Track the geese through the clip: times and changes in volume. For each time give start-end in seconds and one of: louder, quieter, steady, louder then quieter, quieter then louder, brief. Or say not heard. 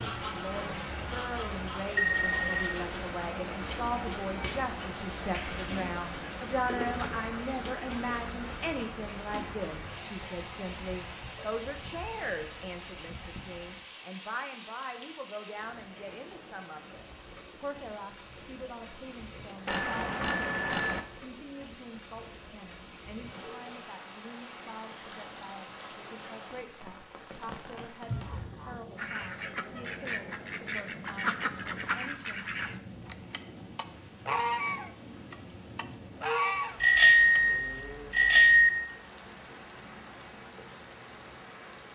0.0-1.9 brief
28.1-37.4 louder.